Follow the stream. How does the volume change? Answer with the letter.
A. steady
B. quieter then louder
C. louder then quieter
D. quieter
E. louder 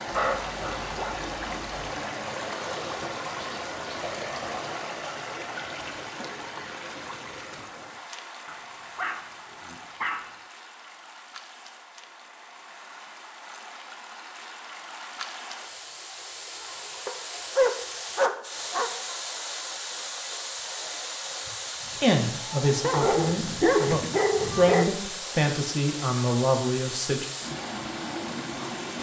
B.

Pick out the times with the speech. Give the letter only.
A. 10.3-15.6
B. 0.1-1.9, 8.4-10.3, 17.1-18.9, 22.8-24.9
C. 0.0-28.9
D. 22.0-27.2
D.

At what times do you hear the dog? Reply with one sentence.
You can hear the dog from 0.1 to 1.9 s, from 8.4 to 10.3 s, from 17.1 to 18.9 s and from 22.8 to 24.9 s.